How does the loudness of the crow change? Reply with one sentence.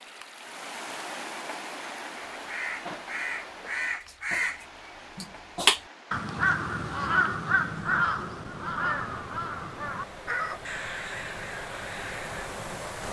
The loudness of the crow goes up, then down.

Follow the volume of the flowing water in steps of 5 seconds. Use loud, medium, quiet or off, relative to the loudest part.
loud, medium, loud.